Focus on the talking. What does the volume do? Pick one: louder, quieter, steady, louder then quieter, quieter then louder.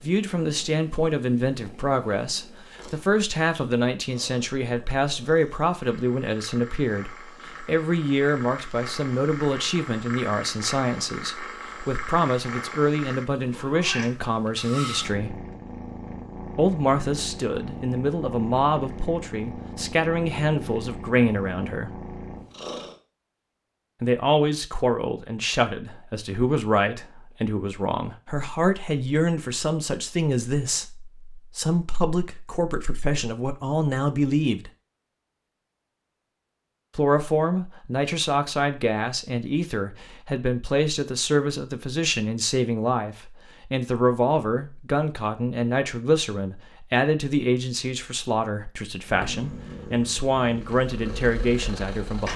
steady.